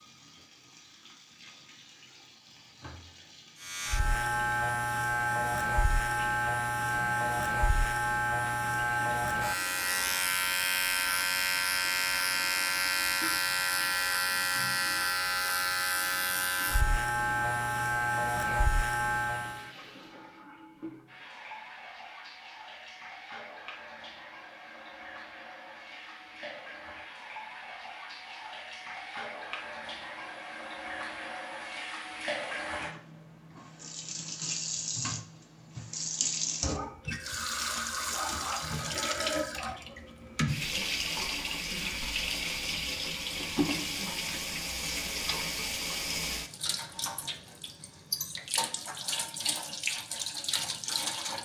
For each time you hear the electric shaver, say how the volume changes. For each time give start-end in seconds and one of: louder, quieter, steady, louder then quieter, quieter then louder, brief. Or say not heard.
3.6-19.7 steady.